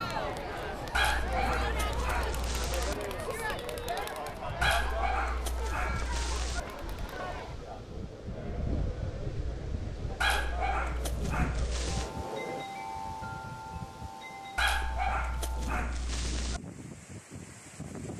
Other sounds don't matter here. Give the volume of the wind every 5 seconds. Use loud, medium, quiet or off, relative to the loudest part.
medium, loud, loud, loud.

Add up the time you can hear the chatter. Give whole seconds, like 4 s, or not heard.
13 s.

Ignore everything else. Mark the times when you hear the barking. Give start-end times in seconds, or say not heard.
0.9-3.0, 4.6-6.6, 10.2-12.1, 14.6-16.6.